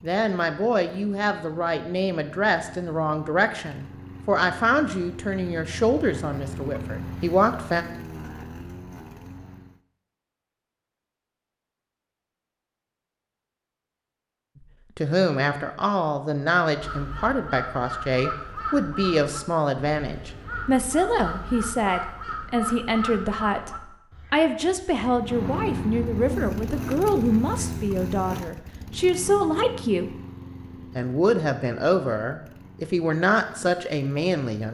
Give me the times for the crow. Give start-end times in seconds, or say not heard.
16.7-25.2.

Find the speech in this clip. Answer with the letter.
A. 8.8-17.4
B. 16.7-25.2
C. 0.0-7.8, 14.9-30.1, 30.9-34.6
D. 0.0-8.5
C.